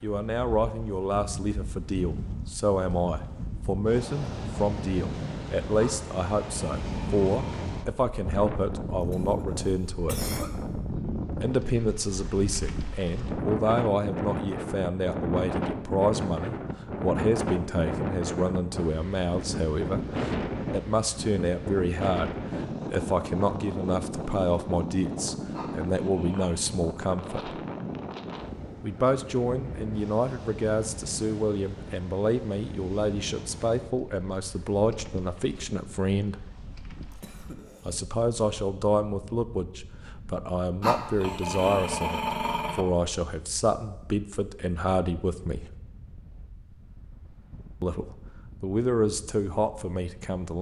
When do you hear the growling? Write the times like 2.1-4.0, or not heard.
5.8-7.8, 25.5-26.6, 40.8-42.9.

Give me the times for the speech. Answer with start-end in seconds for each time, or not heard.
0.0-10.3, 11.3-27.6, 28.8-36.5, 37.9-45.8, 47.8-50.5.